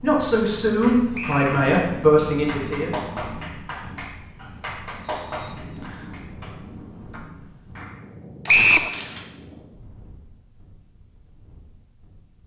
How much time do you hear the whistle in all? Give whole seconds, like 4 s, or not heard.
2 s.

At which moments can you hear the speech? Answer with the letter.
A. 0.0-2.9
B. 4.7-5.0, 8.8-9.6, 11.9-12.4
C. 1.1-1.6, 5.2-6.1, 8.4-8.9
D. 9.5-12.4
A.